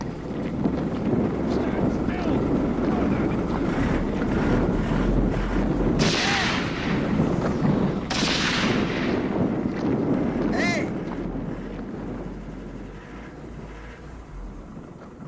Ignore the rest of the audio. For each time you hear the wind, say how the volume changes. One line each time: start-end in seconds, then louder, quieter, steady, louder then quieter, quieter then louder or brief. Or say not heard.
0.0-15.2 quieter.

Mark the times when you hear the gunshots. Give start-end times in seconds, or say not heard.
6.0-9.8.